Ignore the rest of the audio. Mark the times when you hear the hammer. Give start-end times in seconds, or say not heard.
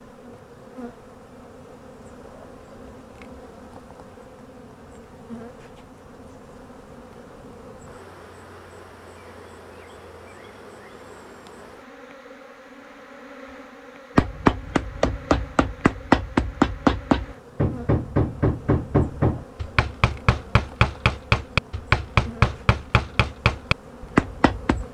14.2-24.8.